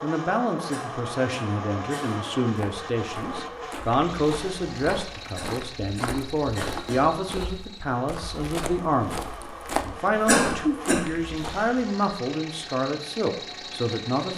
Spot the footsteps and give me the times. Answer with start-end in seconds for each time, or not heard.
2.4-11.7.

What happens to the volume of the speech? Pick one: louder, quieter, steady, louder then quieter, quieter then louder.
steady.